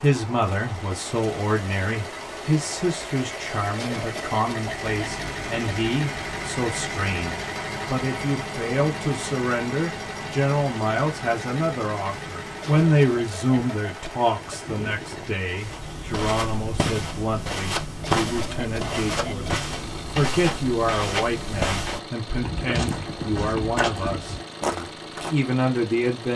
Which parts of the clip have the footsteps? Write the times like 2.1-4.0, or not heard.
15.4-25.4.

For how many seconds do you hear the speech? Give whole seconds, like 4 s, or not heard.
26 s.